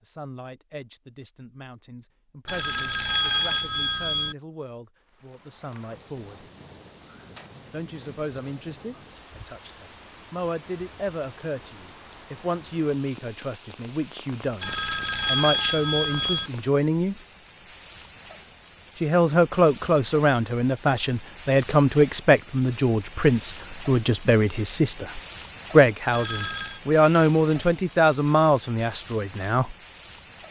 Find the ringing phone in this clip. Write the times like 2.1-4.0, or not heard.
2.5-4.3, 14.6-16.5, 26.1-26.8.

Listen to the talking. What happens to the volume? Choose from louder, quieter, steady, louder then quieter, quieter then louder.
louder.